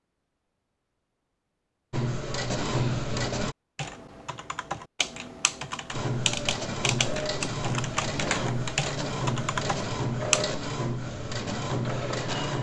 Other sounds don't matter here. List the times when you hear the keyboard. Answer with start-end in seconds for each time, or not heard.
3.8-10.5.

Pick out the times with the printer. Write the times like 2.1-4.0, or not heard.
1.9-3.5, 5.9-12.5.